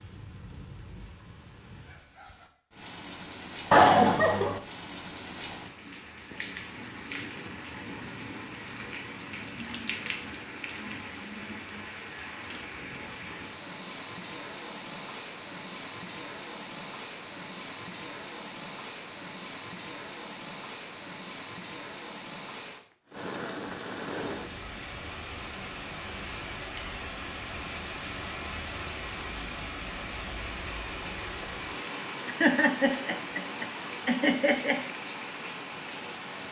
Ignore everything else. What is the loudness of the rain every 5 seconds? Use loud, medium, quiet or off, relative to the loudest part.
medium, loud, loud, loud, loud, loud, loud, loud.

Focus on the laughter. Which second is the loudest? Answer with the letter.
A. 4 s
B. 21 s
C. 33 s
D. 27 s
A.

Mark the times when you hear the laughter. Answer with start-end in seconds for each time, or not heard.
3.7-4.6, 32.2-34.8.